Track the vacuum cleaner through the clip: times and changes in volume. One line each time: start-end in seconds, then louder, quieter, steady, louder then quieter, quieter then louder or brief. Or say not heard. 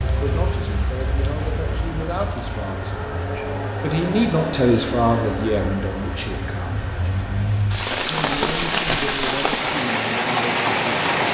0.0-7.8 louder then quieter.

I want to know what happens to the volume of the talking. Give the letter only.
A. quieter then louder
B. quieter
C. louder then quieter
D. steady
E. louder
C.